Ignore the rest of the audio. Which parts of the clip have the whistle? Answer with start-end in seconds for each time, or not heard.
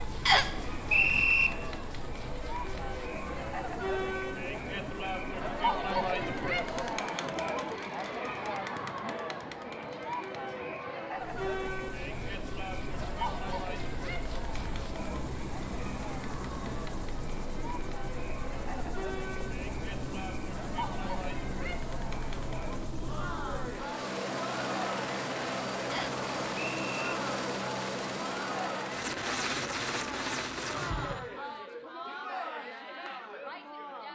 0.2-1.5, 25.9-27.1.